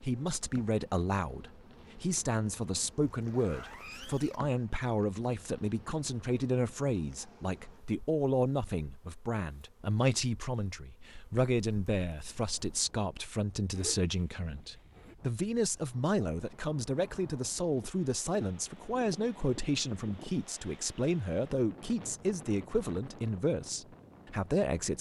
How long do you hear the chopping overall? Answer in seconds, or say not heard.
not heard.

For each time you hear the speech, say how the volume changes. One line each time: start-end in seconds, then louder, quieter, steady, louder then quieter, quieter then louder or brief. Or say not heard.
0.0-24.9 steady.